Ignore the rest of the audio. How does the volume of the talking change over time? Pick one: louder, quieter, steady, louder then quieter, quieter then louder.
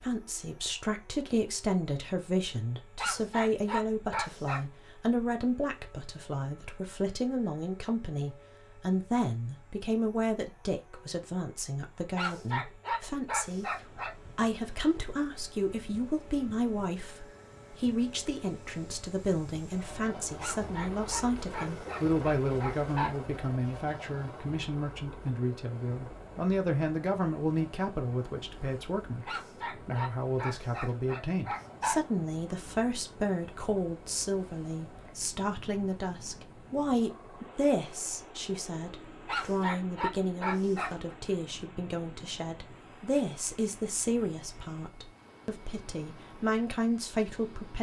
steady.